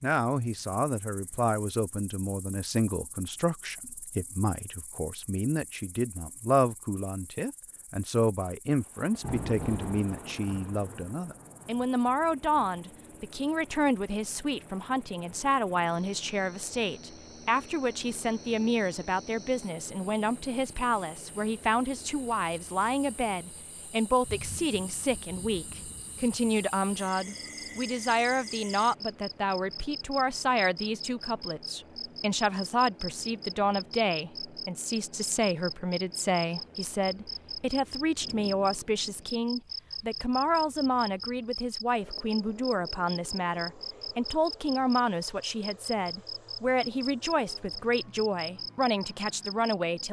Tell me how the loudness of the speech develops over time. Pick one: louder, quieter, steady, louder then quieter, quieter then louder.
steady.